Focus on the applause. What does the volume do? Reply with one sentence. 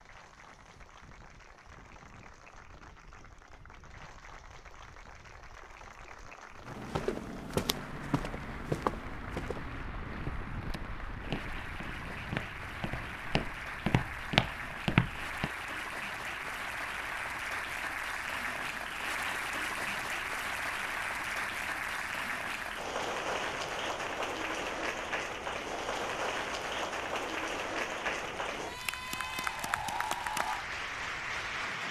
The volume of the applause goes up.